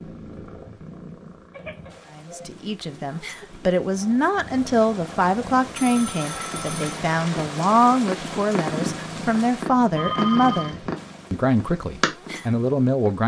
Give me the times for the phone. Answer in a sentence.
You can hear the phone from 1.5 to 2.5 s, from 5.8 to 7.0 s and from 9.9 to 10.8 s.